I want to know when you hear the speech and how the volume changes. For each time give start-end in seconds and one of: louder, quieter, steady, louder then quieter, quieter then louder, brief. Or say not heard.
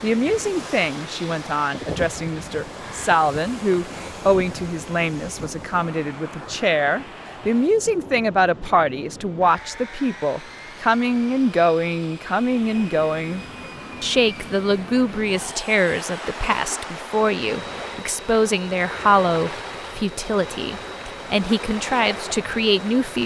0.0-23.2 steady.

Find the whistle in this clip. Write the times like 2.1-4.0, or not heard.
not heard.